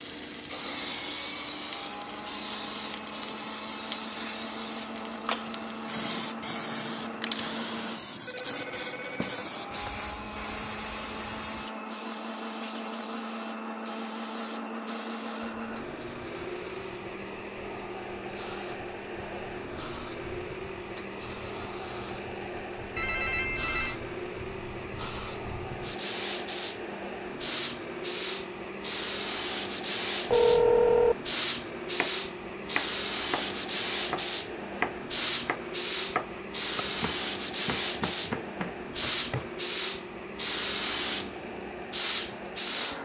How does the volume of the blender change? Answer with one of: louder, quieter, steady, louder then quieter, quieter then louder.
steady.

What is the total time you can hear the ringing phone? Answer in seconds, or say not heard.
4 s.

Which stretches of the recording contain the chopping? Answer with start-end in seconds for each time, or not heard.
31.9-39.5.